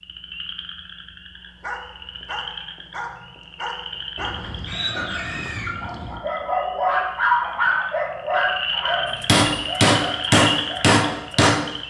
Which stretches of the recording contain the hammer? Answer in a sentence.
You can hear the hammer from 9.2 to 11.7 s.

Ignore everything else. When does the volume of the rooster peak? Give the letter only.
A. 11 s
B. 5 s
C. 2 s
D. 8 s
B.